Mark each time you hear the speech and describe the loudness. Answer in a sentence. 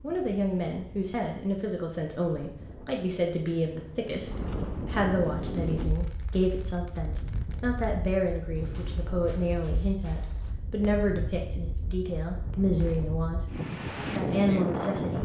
The speech can be heard from 0.0 to 13.4 s, at a steady volume; and briefly from 14.1 to 15.2 s.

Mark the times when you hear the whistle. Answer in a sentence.
The whistle can't be heard in this clip.